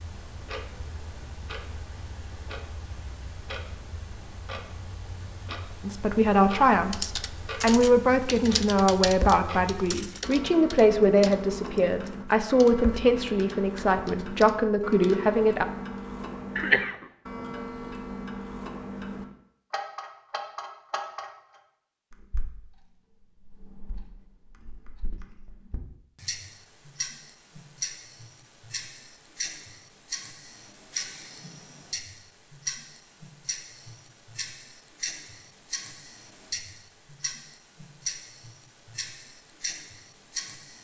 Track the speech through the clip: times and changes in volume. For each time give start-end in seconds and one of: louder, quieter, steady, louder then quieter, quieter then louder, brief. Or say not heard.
5.8-15.7 steady.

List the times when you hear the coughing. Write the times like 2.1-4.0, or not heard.
16.6-17.1.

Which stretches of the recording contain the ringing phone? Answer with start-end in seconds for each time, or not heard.
not heard.